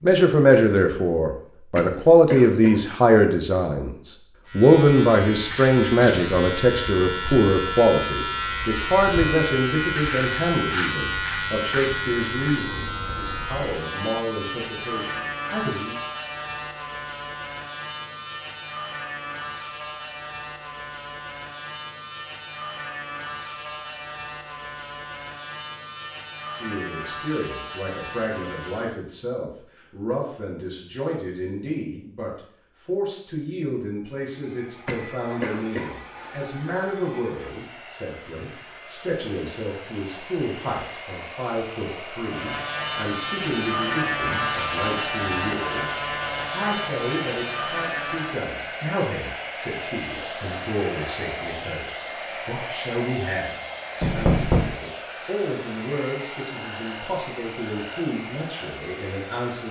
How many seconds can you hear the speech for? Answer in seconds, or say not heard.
49 s.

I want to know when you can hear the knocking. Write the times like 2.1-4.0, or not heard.
54.0-54.8.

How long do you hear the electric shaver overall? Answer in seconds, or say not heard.
31 s.